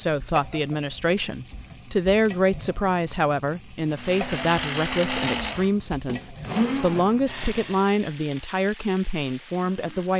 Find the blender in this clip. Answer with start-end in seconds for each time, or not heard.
3.9-7.8.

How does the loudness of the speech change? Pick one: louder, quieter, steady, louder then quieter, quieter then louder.
steady.